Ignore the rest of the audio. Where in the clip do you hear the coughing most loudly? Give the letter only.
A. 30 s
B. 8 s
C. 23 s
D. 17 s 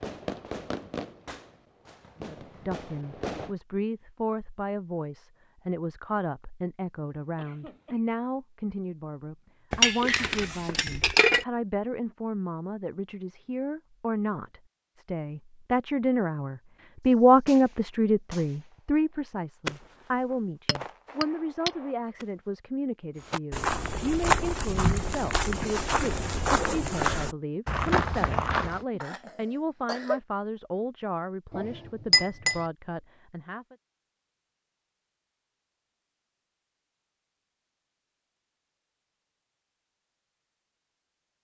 A.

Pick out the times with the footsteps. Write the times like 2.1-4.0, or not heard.
23.2-28.9.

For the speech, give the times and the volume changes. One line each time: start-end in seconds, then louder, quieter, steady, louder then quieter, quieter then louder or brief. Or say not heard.
2.2-33.8 louder then quieter.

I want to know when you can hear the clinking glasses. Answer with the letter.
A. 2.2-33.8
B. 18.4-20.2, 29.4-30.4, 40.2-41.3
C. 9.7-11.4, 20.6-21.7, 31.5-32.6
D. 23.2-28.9
C.